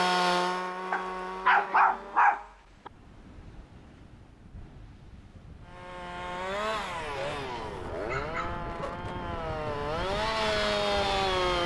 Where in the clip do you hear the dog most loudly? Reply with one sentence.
The volume of the dog peaks at 2 seconds.